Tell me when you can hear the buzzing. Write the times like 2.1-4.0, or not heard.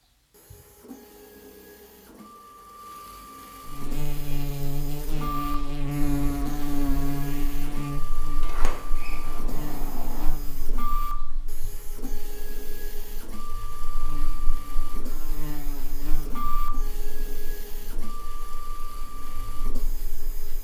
3.6-20.6.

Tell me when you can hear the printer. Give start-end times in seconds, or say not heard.
0.1-20.6.